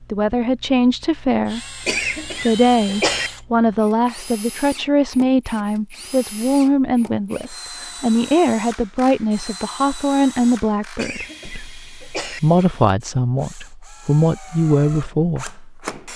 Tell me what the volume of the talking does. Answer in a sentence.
The volume of the talking stays about the same.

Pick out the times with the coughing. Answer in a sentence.
You can hear the coughing from 1.9 to 3.3 s and from 10.9 to 12.4 s.